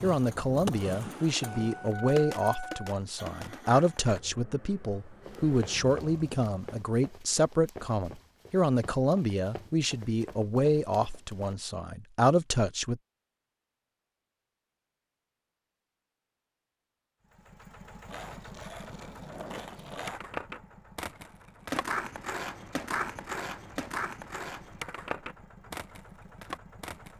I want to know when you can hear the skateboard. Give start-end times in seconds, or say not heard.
0.0-4.2, 18.1-27.1.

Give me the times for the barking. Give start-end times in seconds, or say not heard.
not heard.